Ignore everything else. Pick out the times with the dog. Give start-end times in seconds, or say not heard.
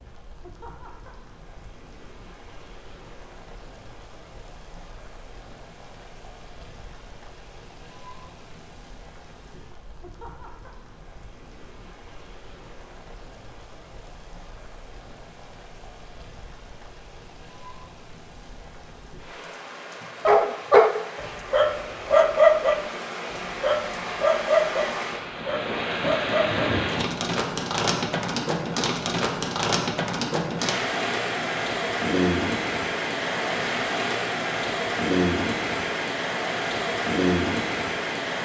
20.2-26.6.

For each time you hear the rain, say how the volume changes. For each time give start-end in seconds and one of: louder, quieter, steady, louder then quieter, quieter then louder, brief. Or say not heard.
0.0-38.3 louder.